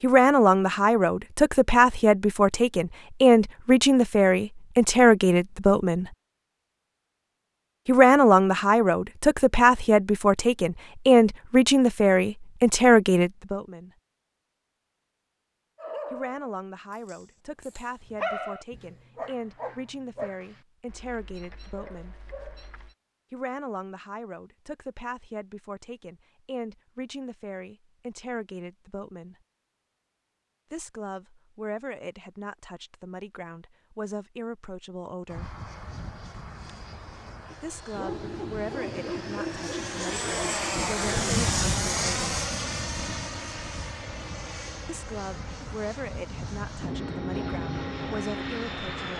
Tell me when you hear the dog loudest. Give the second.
18 s.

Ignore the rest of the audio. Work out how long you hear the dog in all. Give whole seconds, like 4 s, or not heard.
11 s.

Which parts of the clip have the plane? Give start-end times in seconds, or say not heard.
35.3-49.1.